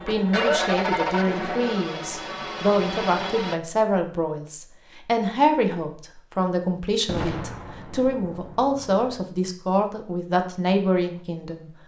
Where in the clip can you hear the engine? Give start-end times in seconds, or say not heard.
0.0-3.6.